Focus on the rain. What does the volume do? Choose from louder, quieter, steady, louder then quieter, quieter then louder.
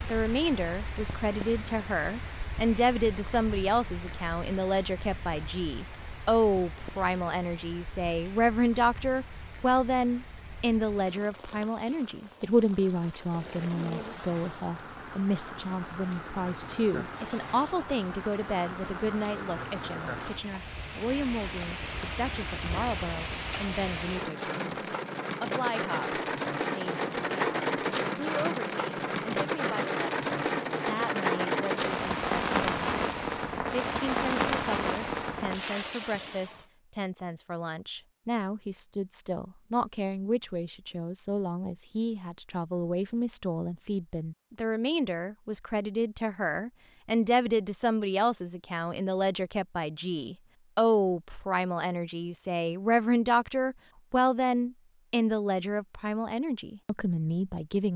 louder.